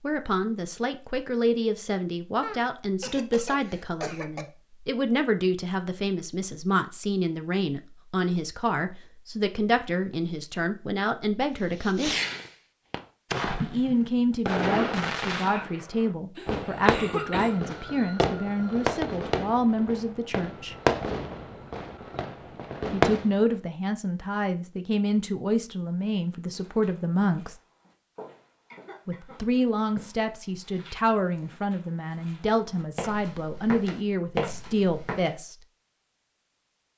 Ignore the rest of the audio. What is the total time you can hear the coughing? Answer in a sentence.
The coughing can be heard for 4 seconds in total.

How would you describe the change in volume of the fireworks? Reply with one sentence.
The volume of the fireworks stays about the same.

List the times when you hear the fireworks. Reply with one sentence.
You can hear the fireworks from 11.8 to 23.6 s.